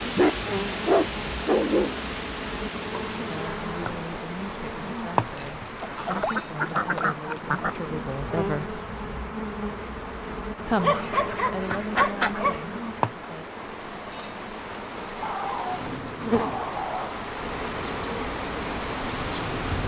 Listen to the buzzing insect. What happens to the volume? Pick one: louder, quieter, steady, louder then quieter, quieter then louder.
steady.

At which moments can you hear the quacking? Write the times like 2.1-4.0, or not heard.
5.8-7.7, 10.9-12.5.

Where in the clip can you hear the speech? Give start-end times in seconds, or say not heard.
3.1-8.8, 10.7-13.4.